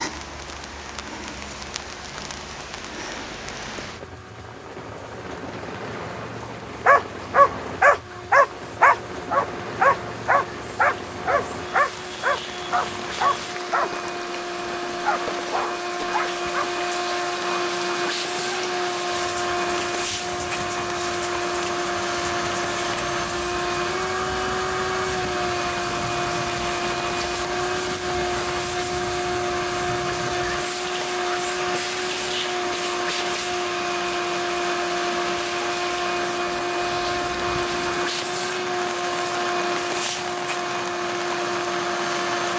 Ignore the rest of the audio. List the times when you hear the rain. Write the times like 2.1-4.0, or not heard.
0.0-42.5.